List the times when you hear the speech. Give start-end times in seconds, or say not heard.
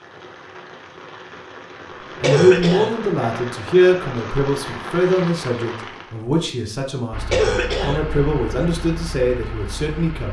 2.2-10.2.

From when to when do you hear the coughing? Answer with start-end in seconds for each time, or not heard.
2.2-3.0, 7.3-8.0.